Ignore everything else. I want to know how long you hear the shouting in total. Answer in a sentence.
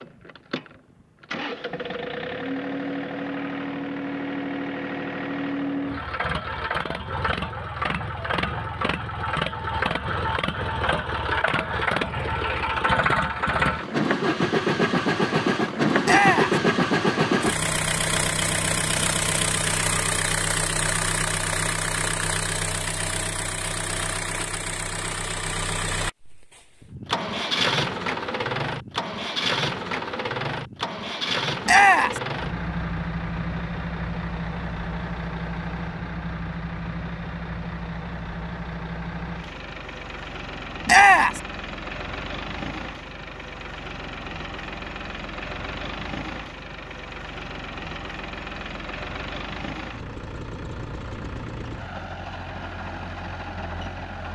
You can hear the shouting for 2 seconds altogether.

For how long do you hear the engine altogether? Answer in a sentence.
You can hear the engine for 54 seconds altogether.